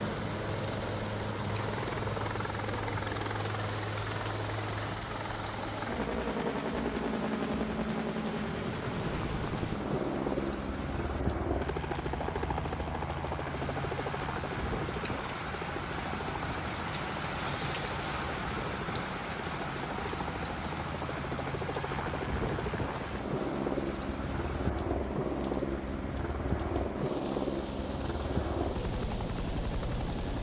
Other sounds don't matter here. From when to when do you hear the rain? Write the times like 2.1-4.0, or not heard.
0.1-30.3.